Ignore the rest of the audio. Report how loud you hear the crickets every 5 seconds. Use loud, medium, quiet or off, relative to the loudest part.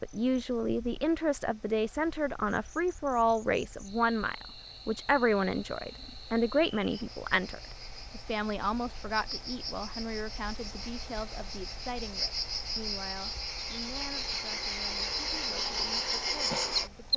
quiet, quiet, medium, loud.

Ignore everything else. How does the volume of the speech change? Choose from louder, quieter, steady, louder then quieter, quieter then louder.
quieter.